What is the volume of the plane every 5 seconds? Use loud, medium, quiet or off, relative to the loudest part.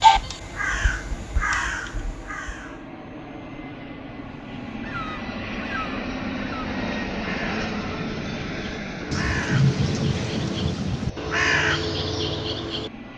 medium, loud, medium.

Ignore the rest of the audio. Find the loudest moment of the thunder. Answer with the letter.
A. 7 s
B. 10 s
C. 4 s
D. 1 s
B.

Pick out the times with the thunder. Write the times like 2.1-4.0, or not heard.
9.1-11.1.